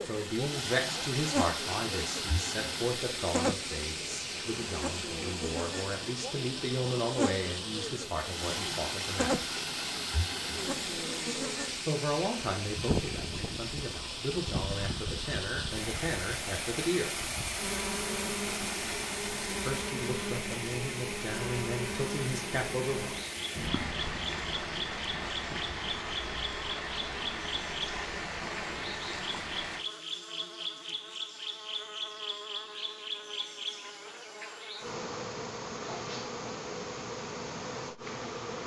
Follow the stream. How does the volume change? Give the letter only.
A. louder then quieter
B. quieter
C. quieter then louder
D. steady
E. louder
D.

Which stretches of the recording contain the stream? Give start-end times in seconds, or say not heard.
0.0-29.9.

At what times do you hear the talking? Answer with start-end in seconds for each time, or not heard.
0.0-9.4, 11.8-17.1, 19.6-23.2.